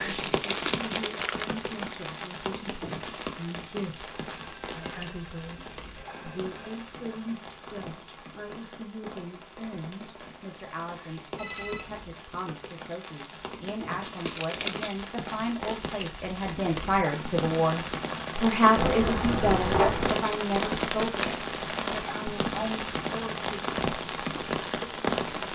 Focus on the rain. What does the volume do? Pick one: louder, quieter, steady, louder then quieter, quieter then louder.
quieter then louder.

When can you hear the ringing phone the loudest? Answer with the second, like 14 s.
20 s.